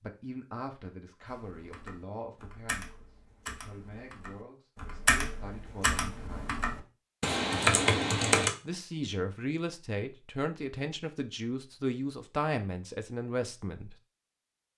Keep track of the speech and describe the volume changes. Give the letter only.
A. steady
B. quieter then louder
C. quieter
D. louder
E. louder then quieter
B.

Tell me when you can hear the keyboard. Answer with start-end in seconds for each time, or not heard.
1.2-8.6.